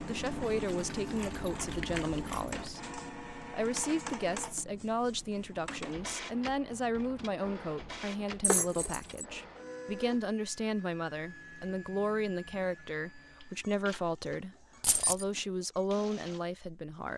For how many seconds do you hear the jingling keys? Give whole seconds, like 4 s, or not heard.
4 s.